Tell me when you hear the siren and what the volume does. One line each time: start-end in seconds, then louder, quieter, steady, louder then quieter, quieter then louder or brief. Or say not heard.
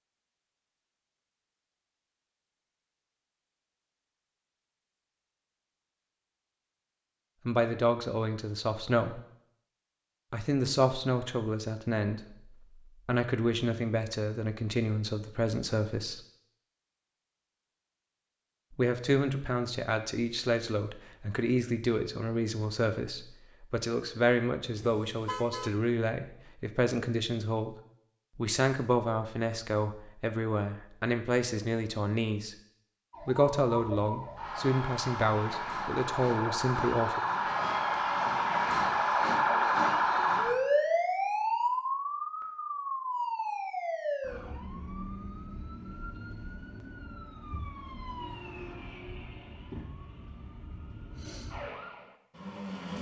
33.1-52.9 louder then quieter.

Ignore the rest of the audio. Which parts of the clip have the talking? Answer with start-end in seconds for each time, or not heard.
7.5-9.2, 10.3-16.2, 18.8-27.8, 28.4-32.5, 33.2-37.2.